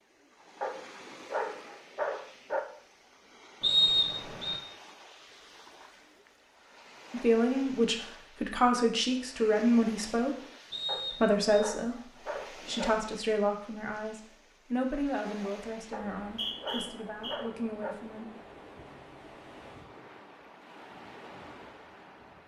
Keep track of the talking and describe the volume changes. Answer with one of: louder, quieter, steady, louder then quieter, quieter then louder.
quieter.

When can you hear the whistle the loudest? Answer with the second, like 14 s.
4 s.